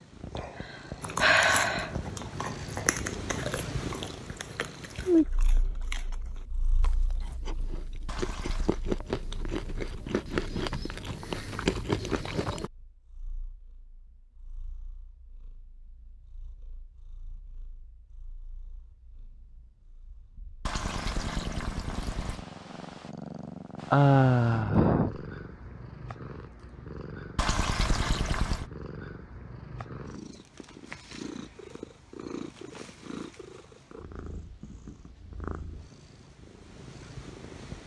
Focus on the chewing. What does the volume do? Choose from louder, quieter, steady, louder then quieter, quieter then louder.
quieter then louder.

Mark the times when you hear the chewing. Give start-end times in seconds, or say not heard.
1.0-12.7.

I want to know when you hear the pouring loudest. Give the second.
28 s.